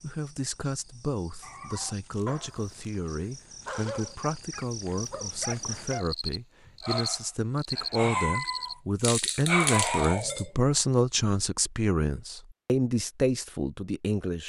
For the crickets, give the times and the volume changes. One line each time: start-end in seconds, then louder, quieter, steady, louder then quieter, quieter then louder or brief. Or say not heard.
0.0-8.8 louder.